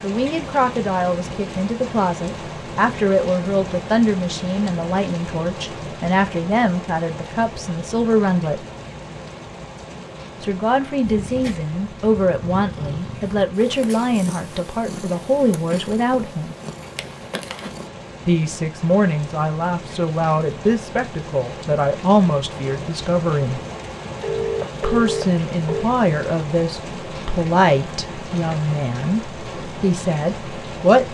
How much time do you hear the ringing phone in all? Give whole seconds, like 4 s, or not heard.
2 s.